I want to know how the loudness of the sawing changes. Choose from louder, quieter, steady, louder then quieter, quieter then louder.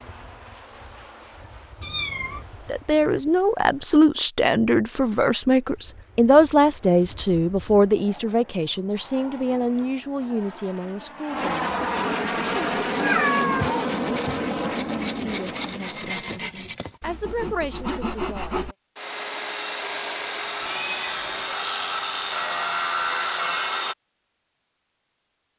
louder.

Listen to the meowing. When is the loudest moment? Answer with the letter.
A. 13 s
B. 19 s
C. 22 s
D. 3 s
A.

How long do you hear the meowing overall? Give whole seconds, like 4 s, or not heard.
3 s.